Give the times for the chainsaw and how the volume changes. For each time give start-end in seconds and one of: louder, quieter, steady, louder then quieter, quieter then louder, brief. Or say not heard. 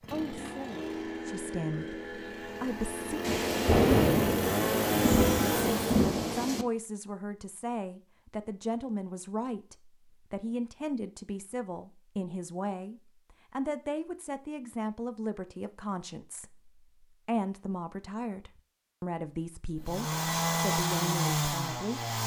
0.0-6.1 louder
19.8-22.2 brief.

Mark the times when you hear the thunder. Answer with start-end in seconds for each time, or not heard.
3.2-6.7.